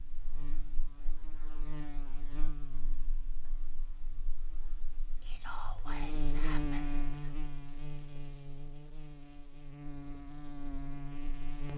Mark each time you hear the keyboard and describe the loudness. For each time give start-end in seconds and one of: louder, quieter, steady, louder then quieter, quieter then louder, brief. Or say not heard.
not heard.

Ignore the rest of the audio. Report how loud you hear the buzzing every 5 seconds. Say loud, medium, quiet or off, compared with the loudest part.
medium, loud, loud.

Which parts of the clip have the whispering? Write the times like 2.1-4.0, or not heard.
5.2-7.3.